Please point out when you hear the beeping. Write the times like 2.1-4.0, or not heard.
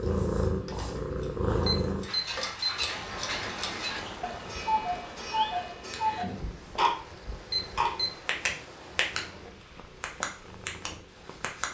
1.6-2.7, 7.5-8.1.